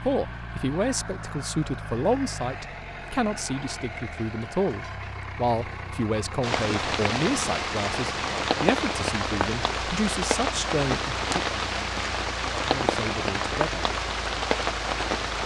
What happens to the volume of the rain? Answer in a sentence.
The loudness of the rain stays about the same.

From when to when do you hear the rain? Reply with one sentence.
You can hear the rain from 6.4 to 15.4 s.